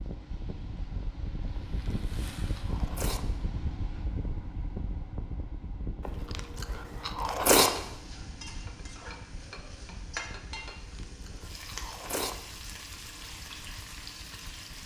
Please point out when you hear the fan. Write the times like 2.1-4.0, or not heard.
0.0-14.8.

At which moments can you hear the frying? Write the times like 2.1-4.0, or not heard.
0.0-4.0, 7.5-14.8.